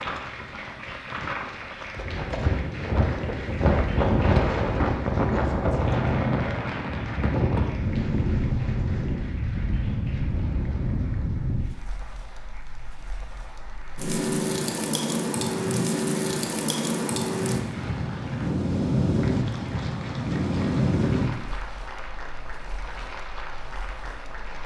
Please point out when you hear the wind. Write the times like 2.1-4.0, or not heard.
0.0-24.6.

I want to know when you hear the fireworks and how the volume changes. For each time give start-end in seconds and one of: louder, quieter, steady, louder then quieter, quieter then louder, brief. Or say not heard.
not heard.